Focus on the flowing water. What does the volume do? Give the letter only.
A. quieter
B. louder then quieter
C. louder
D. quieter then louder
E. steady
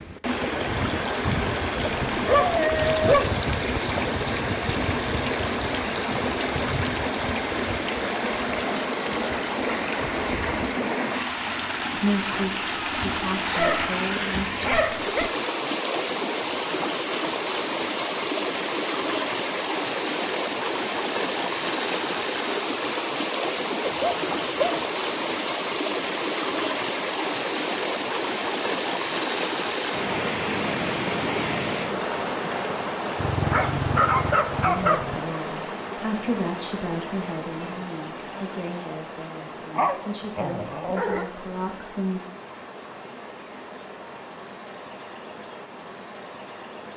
A.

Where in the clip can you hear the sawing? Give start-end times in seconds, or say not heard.
not heard.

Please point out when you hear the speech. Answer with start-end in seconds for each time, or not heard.
11.9-14.7, 34.6-42.2.